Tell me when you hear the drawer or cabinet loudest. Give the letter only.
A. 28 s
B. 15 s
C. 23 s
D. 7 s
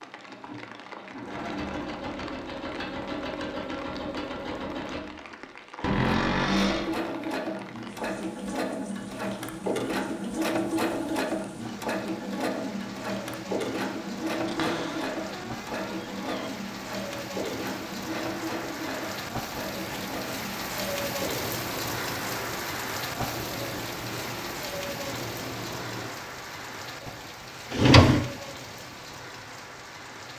A.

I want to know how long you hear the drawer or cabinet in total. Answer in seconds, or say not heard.
4 s.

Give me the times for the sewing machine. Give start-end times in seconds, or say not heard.
0.0-26.1.